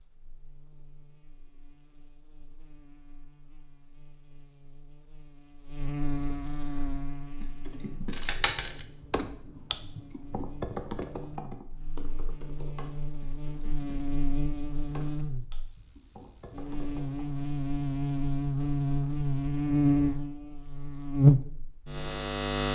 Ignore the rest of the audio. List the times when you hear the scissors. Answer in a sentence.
You can hear the scissors from 8.1 to 8.8 s.